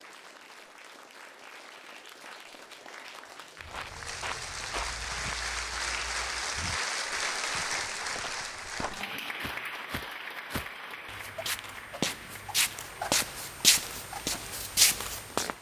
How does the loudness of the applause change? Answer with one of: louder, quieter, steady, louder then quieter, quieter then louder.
louder then quieter.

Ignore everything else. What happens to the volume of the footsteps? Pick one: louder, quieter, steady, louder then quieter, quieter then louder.
quieter then louder.